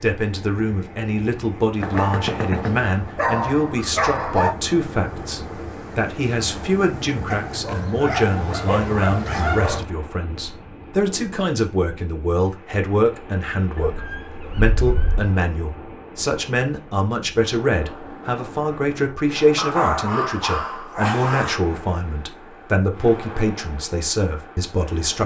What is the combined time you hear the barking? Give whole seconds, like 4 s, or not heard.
9 s.